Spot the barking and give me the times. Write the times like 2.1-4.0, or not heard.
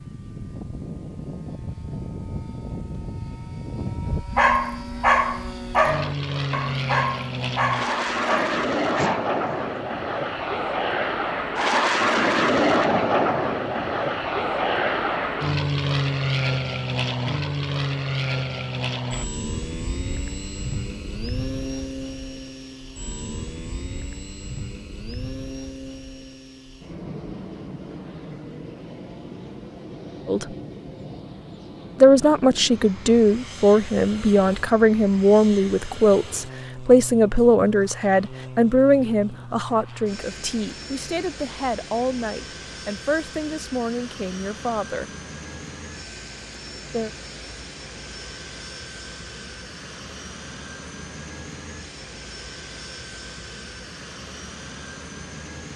4.3-9.7.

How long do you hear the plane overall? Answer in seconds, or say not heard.
56 s.